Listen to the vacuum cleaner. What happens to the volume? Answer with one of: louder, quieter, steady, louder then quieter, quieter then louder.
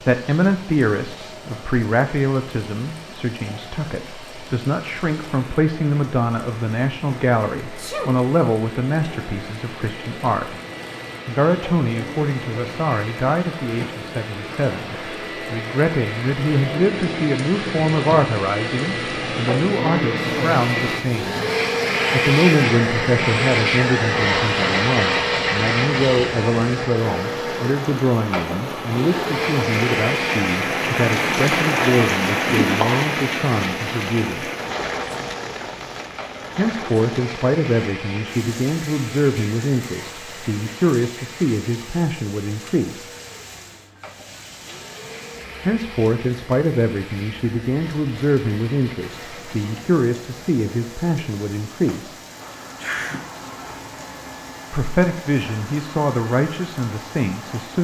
louder then quieter.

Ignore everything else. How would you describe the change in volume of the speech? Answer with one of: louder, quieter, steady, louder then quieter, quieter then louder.
steady.